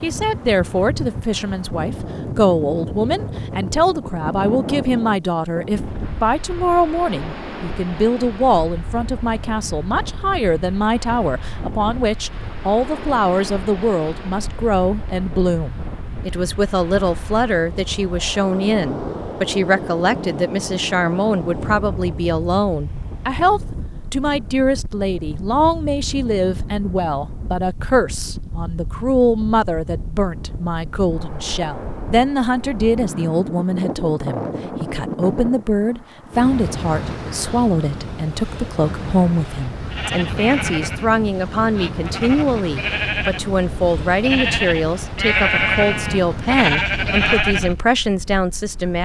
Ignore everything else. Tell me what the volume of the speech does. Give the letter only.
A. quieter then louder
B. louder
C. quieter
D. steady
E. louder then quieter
D.